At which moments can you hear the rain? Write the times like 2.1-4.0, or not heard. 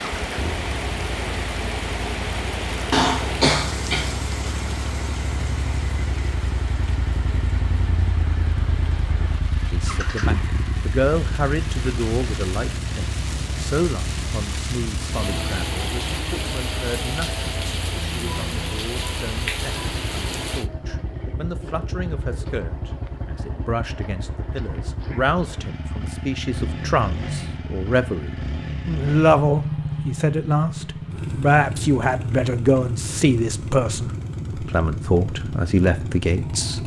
0.0-20.7.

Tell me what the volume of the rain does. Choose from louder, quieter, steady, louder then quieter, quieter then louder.
quieter then louder.